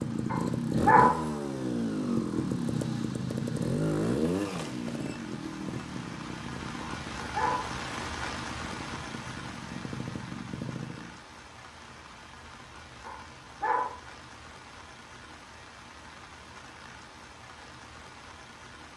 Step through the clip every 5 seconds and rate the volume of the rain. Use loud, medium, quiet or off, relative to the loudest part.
quiet, loud, medium, medium.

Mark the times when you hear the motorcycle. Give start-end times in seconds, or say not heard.
0.0-11.2.